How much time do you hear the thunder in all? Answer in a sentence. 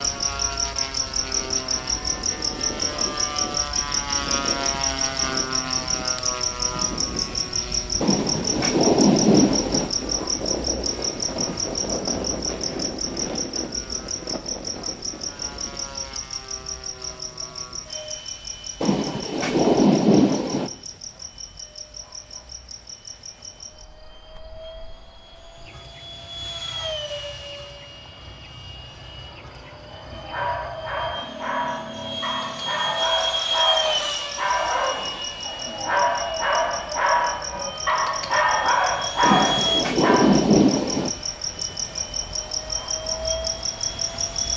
You can hear the thunder for 6 seconds altogether.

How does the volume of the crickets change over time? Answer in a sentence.
The volume of the crickets goes down, then up.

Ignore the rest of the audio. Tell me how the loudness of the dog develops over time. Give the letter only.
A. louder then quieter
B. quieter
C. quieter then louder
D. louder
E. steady
D.